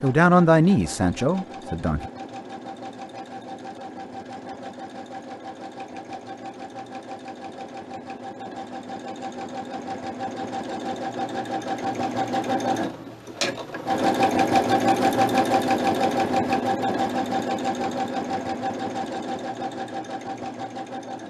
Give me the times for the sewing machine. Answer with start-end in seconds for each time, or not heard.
0.0-21.2.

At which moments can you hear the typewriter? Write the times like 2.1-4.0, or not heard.
not heard.